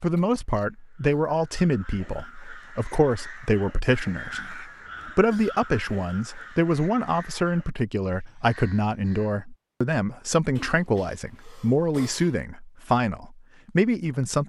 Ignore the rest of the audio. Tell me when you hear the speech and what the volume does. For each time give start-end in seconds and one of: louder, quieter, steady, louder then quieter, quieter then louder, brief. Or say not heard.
0.0-14.4 steady.